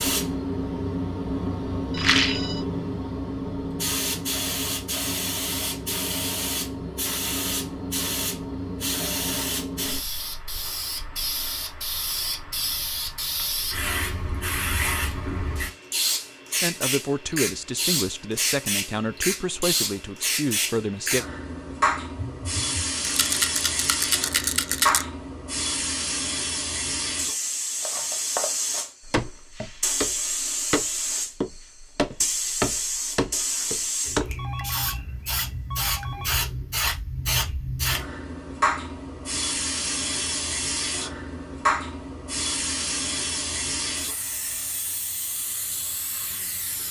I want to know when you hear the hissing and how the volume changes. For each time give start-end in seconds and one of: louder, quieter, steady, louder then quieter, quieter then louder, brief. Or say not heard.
0.0-46.8 steady.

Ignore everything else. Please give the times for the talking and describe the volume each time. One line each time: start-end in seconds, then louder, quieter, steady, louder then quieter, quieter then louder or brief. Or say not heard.
16.6-21.2 steady.